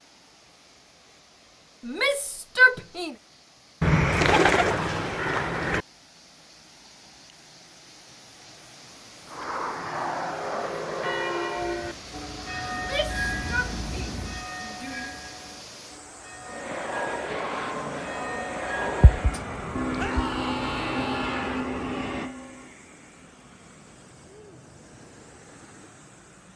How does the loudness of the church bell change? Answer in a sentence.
The volume of the church bell goes down, then up.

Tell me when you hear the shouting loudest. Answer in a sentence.
The volume of the shouting peaks at 3 seconds.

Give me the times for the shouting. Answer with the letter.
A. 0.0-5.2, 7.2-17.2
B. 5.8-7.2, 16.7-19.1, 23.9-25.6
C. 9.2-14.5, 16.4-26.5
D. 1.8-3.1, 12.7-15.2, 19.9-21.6
D.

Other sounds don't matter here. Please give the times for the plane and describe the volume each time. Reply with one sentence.
The plane can be heard from 9.2 to 14.5 s, getting quieter then louder; and from 16.4 to 26.5 s, getting quieter.